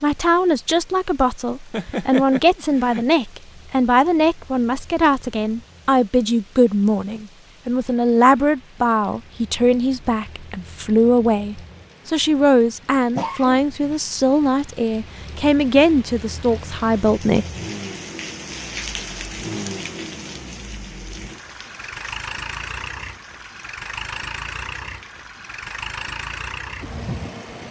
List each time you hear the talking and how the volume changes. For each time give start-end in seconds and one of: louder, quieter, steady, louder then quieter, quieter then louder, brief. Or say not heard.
0.0-17.4 steady.